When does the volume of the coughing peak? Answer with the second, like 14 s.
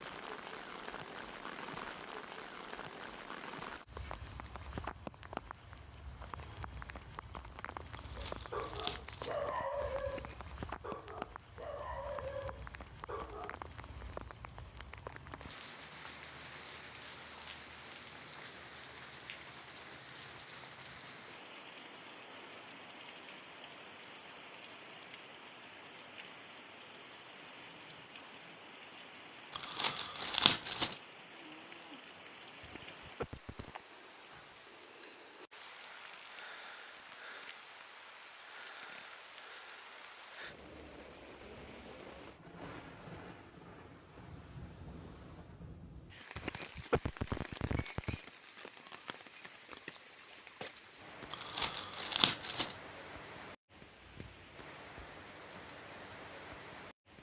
47 s.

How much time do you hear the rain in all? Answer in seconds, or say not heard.
57 s.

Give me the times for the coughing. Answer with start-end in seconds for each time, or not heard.
10.1-10.6, 32.6-33.7, 46.4-48.3.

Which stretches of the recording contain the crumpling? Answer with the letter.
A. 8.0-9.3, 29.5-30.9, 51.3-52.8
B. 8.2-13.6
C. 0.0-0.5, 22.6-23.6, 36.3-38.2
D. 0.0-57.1
A.